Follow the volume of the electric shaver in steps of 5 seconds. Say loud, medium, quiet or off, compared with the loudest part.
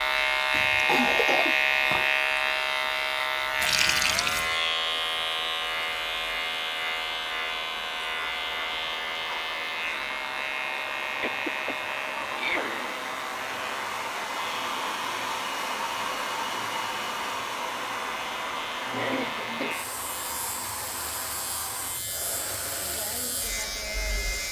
loud, medium, medium, quiet, medium.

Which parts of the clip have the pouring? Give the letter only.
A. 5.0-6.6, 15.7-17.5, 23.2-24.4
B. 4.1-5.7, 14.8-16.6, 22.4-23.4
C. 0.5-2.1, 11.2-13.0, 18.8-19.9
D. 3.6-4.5
D.